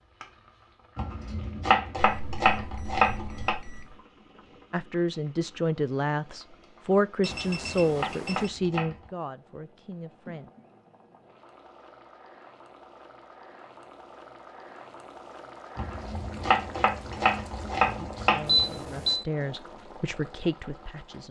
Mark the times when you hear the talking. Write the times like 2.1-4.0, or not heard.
4.7-10.5, 17.9-21.2.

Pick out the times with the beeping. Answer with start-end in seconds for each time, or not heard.
1.9-4.0, 7.2-8.5, 18.4-19.2.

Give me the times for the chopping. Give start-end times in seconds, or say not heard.
0.9-3.5, 7.2-9.1, 15.8-18.6.